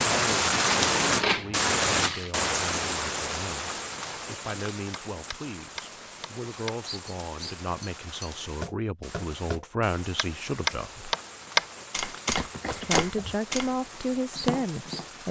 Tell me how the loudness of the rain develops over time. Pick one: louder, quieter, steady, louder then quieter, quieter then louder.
quieter.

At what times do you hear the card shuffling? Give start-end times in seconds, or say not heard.
0.5-2.4, 12.2-13.3.